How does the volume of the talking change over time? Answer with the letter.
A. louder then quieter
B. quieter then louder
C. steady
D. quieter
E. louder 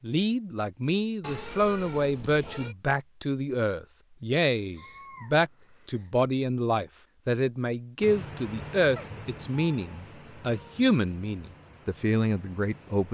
C.